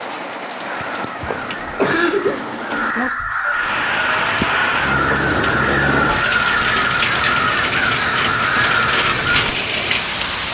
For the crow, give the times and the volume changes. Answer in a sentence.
The crow can be heard from 0.6 to 9.4 s, getting louder.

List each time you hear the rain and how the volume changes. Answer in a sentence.
The rain can be heard from 0.0 to 10.4 s, getting louder.